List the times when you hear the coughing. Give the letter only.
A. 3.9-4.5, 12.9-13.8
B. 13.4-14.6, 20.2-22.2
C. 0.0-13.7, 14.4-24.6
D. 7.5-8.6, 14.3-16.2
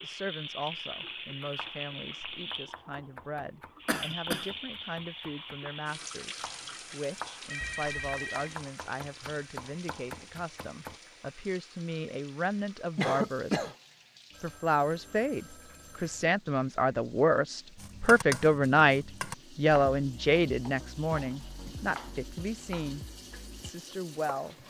A.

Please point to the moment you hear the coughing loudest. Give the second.
13 s.